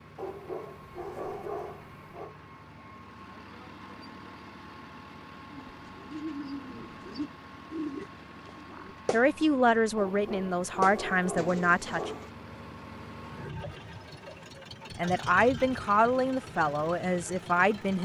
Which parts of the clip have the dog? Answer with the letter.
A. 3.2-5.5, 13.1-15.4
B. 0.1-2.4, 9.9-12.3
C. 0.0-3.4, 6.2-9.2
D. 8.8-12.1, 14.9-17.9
B.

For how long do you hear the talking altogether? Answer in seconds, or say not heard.
6 s.